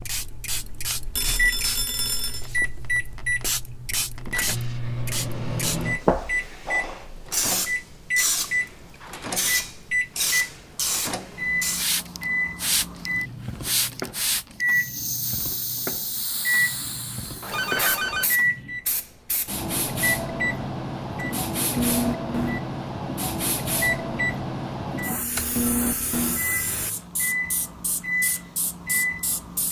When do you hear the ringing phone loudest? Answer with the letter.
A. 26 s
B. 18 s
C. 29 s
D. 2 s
B.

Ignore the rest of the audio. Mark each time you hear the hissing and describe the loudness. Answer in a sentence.
The hissing can be heard from 0.0 to 29.6 s, at a steady volume.